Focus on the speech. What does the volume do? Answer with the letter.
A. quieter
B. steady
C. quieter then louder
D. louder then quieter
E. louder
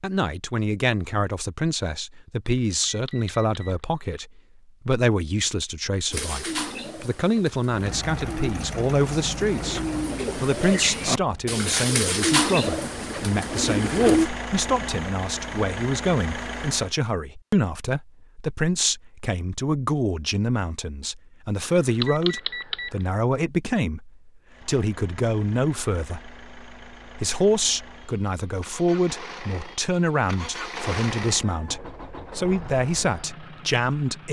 B.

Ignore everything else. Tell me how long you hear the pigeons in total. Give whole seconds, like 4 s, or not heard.
8 s.